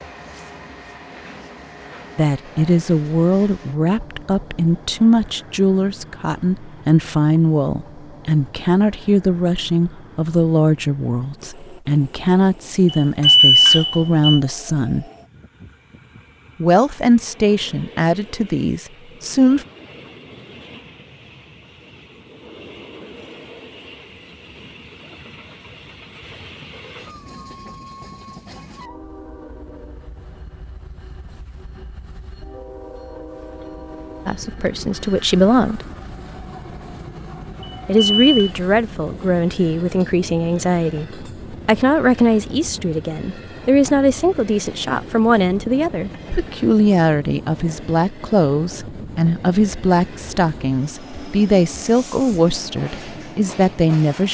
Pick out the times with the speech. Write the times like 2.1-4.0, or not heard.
2.1-15.1, 16.6-19.6, 34.2-35.9, 37.9-54.2.